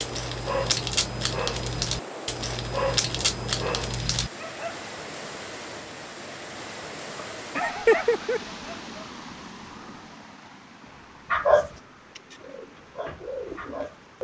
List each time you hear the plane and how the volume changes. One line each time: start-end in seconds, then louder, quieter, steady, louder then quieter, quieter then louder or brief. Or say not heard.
not heard.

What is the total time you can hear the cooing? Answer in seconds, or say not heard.
2 s.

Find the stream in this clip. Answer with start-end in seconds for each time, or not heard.
0.0-14.1.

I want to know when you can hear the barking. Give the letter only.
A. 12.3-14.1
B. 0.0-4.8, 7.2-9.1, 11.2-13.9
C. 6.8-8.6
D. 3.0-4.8
B.